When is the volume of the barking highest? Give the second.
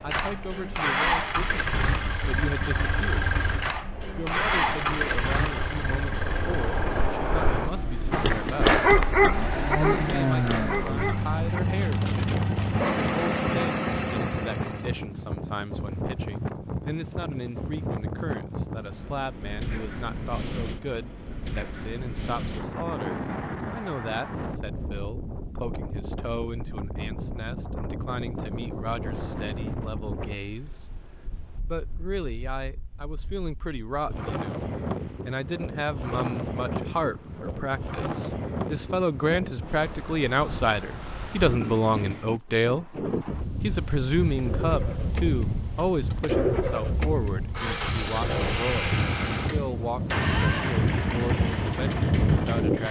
9 s.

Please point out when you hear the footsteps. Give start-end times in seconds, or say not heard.
not heard.